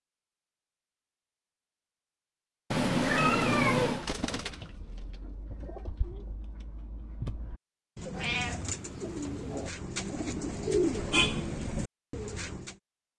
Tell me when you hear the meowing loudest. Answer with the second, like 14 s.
4 s.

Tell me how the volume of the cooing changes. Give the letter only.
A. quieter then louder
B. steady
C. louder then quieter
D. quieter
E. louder
A.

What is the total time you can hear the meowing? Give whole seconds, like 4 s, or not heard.
3 s.